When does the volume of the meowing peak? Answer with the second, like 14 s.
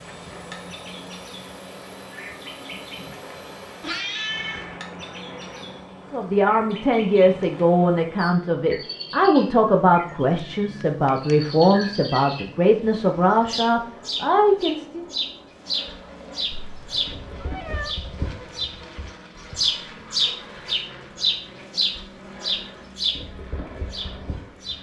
4 s.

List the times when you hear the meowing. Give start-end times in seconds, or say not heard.
3.8-4.8, 10.2-11.3, 16.5-17.9.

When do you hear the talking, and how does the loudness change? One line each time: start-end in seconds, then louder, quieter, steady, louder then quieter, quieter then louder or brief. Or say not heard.
6.1-15.1 steady.